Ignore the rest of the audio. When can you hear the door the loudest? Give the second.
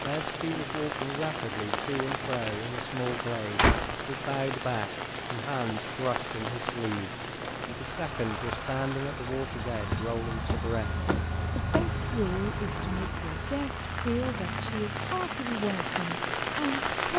4 s.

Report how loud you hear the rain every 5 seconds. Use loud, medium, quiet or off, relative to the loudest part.
loud, medium, medium, loud.